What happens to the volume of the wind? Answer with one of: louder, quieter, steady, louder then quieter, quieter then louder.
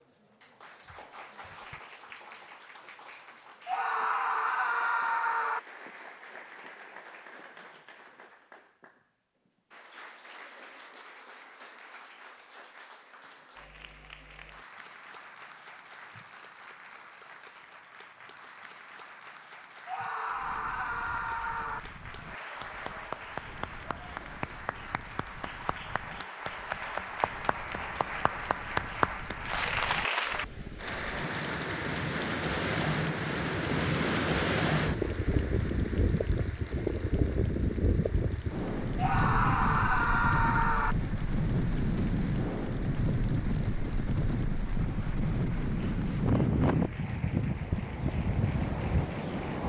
louder.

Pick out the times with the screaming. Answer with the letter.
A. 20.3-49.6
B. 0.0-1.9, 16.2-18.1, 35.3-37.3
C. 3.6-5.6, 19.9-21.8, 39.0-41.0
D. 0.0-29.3
C.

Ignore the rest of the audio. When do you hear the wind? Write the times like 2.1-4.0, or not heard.
20.3-49.6.